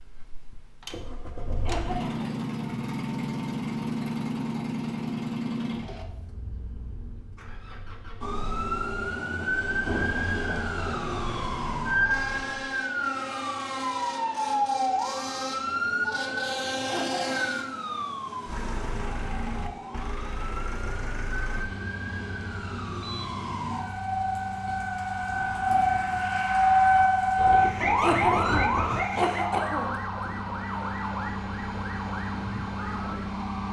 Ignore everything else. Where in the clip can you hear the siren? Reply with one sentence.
The siren can be heard from 8.2 to 33.6 s.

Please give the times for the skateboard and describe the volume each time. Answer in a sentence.
You can't hear the skateboard here.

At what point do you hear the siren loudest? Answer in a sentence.
The loudest moment of the siren is at 27 seconds.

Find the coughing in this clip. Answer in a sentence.
The coughing can be heard from 1.6 to 2.4 s, from 16.9 to 17.6 s and from 28.0 to 29.9 s.